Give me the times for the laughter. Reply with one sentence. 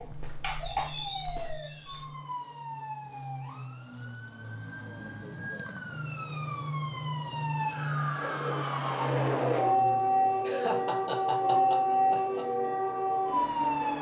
The laughter can be heard from 10.4 to 12.4 s.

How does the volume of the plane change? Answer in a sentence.
The volume of the plane goes up.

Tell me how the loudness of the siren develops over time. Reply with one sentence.
The loudness of the siren goes down, then up.